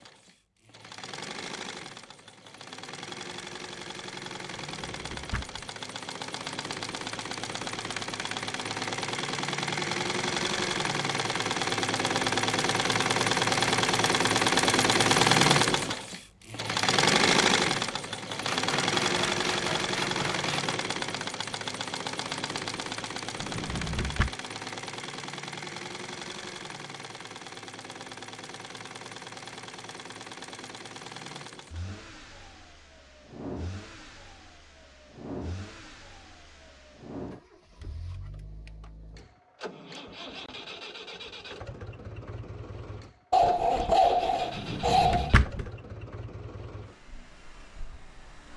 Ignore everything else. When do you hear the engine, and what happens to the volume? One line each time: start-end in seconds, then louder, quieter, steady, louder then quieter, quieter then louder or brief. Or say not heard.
0.0-48.5 louder then quieter.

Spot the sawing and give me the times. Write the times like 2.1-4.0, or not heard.
18.6-20.8, 43.3-45.3.